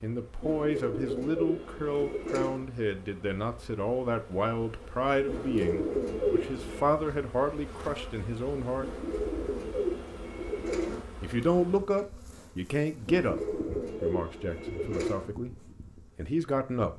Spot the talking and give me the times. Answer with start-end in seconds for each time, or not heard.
0.0-8.9, 11.2-16.9.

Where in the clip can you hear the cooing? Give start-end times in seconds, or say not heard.
0.4-2.6, 5.2-6.9, 8.8-11.1, 13.1-15.3.